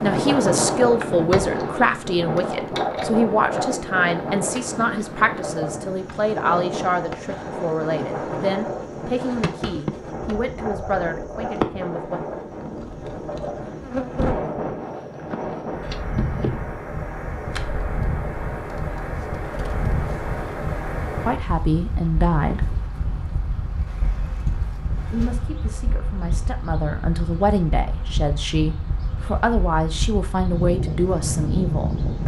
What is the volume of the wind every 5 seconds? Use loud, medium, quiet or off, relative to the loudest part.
loud, medium, medium, medium, medium, medium, loud.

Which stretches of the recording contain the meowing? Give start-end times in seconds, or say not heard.
not heard.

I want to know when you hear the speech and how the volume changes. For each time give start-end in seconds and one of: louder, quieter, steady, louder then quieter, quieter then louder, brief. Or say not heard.
0.0-12.2 quieter
21.2-22.8 brief
25.1-31.9 louder.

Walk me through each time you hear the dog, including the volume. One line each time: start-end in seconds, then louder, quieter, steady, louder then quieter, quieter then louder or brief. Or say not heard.
not heard.